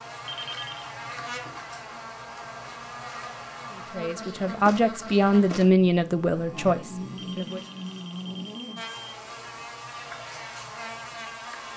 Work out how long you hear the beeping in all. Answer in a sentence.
You can hear the beeping for 3 seconds altogether.